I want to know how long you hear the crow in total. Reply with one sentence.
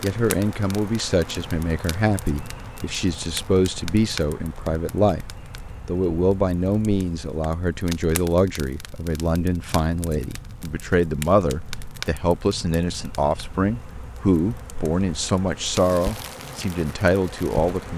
The crow can't be heard in this clip.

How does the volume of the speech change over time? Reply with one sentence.
The loudness of the speech stays about the same.